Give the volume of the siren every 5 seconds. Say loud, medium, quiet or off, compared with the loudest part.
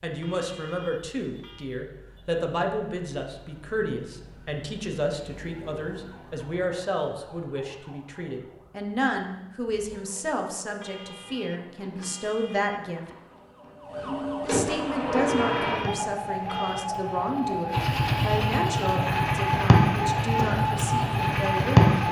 quiet, quiet, medium, loud, loud.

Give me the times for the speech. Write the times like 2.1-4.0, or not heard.
0.0-13.1, 14.4-21.9.